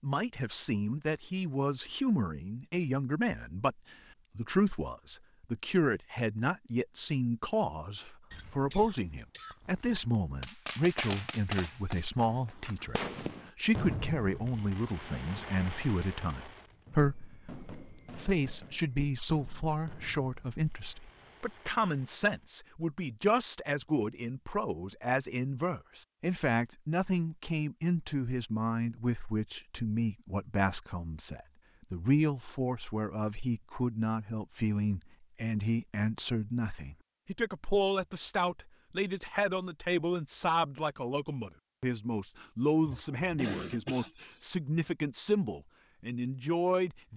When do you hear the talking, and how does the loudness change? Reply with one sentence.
You can hear the talking from 0.0 to 47.1 s, at a steady volume.